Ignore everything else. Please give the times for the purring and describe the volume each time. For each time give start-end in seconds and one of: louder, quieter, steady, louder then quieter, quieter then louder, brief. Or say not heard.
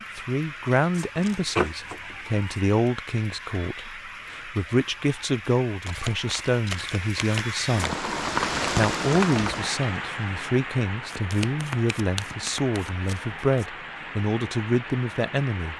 not heard.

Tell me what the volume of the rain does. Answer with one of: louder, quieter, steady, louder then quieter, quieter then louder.
louder then quieter.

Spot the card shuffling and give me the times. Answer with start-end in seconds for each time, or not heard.
0.9-2.6, 5.8-8.0, 11.1-13.7.